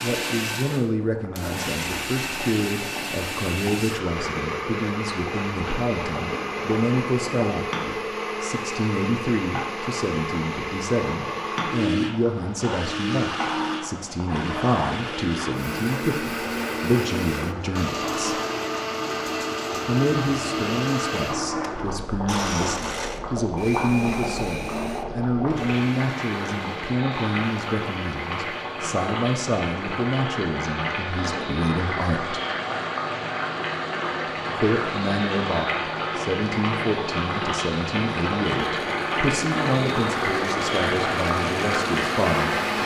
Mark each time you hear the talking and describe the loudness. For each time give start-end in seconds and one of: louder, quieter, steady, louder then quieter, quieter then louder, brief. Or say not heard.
0.0-18.4 steady
19.9-32.4 steady
34.6-42.5 steady.